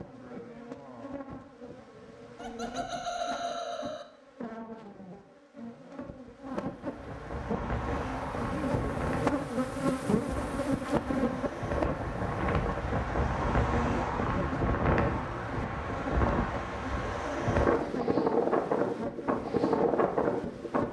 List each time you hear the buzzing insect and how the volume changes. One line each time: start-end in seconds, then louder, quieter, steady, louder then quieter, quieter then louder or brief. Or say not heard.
0.0-20.8 louder then quieter.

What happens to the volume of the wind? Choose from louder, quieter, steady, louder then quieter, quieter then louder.
louder.